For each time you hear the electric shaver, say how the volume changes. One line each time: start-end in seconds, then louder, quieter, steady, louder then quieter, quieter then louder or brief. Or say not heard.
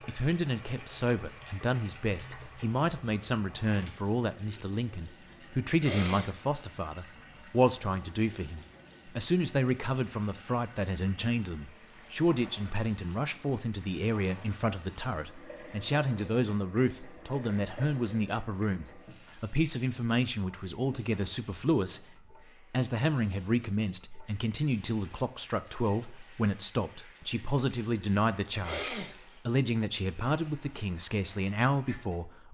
not heard.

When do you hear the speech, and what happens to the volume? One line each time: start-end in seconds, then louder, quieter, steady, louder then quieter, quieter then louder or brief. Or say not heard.
0.1-32.4 steady.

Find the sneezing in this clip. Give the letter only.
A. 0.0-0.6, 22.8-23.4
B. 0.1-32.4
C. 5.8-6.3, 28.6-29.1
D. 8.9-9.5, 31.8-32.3
C.